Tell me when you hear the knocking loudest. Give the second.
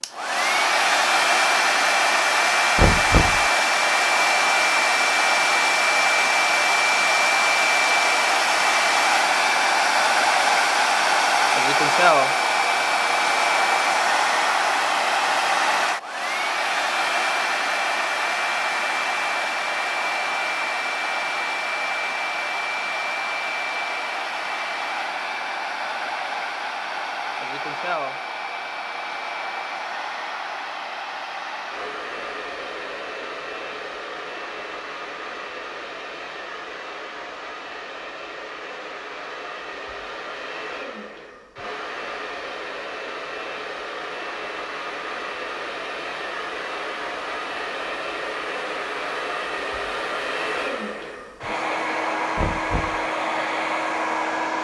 3 s.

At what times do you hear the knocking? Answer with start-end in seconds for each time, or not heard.
2.8-3.4, 52.4-53.0.